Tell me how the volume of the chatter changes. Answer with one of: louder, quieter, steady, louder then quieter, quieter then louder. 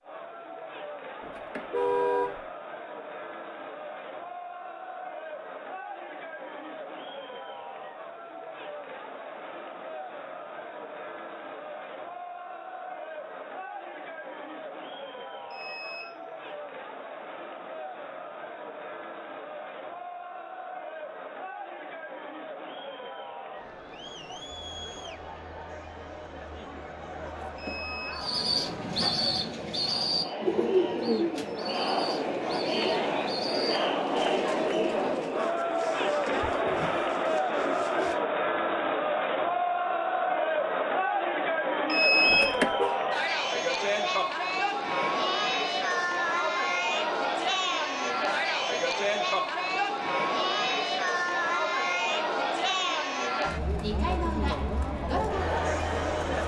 louder.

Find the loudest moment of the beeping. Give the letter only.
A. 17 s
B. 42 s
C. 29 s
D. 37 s
B.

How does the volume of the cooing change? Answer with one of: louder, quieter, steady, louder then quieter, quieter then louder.
quieter.